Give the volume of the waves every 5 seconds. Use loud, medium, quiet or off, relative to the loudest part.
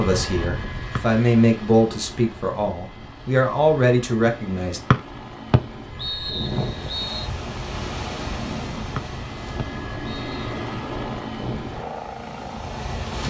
off, loud, loud.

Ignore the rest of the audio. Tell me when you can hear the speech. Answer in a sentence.
The speech can be heard from 0.0 to 4.8 s.